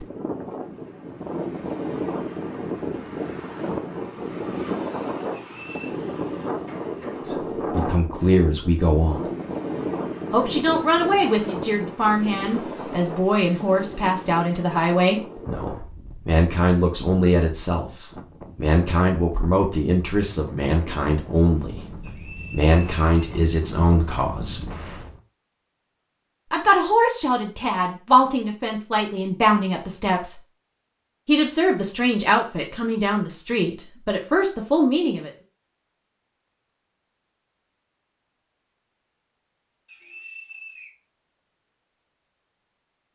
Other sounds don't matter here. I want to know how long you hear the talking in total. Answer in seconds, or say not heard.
24 s.